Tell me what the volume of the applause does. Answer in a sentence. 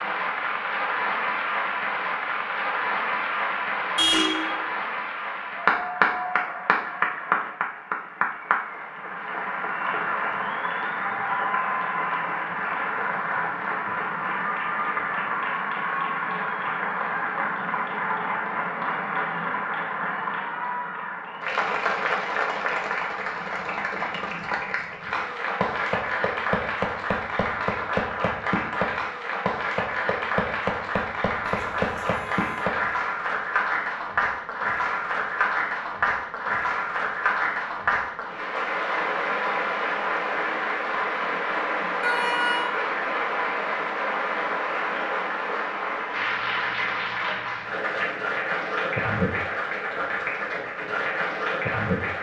The loudness of the applause stays about the same.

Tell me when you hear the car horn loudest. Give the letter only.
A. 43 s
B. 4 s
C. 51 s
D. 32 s
B.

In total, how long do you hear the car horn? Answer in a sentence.
You can hear the car horn for 3 seconds altogether.